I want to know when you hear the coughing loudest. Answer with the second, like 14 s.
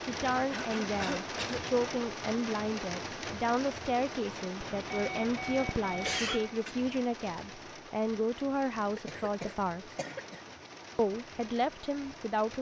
6 s.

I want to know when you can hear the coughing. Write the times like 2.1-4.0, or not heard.
0.5-1.6, 6.0-6.8, 8.9-10.4.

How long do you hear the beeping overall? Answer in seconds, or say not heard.
2 s.